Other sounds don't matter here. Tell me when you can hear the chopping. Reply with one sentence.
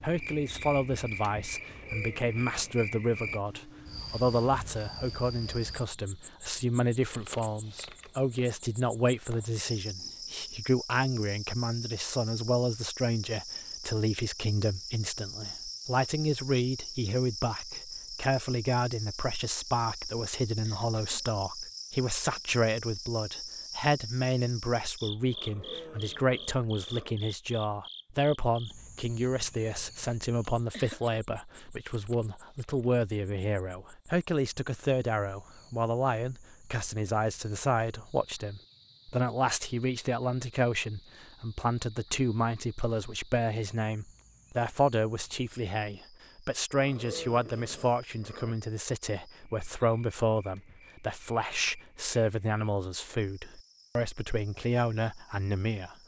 You can't hear the chopping here.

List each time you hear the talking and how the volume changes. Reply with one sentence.
You can hear the talking from 0.0 to 56.0 s, at a steady volume.